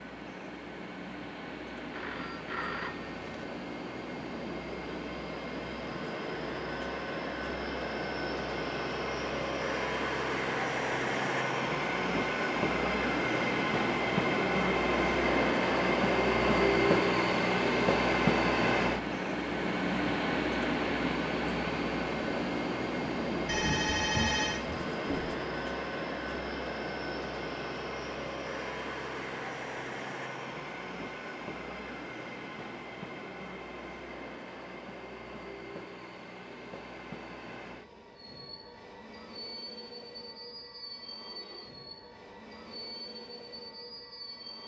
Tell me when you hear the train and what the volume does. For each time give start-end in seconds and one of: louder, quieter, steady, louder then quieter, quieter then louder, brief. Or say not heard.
0.0-44.6 louder then quieter.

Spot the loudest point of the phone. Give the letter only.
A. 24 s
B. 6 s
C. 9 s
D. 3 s
A.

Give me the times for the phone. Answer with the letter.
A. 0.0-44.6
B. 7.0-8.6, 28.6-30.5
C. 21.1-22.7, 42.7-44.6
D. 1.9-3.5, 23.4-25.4
D.